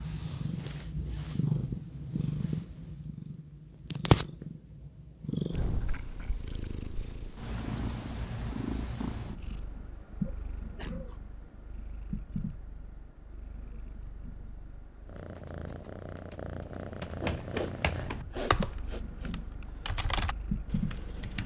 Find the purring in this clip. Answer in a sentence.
The purring can be heard from 0.0 to 21.4 s.